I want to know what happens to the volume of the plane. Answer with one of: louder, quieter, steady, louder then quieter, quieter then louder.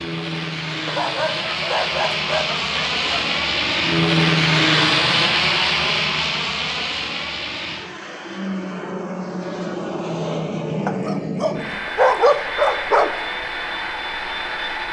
louder then quieter.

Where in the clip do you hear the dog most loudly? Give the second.
12 s.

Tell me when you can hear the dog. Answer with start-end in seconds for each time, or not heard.
0.8-3.4, 10.8-13.1.